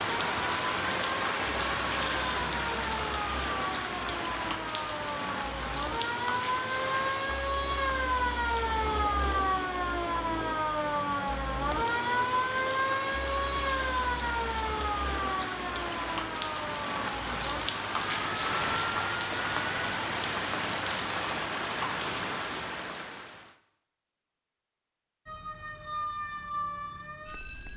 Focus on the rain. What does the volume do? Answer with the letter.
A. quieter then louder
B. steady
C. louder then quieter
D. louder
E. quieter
A.